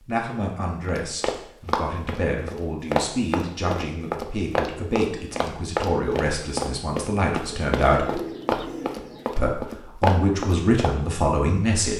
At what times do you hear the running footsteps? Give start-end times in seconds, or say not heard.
0.8-10.9.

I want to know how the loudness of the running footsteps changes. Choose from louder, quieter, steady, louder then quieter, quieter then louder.
steady.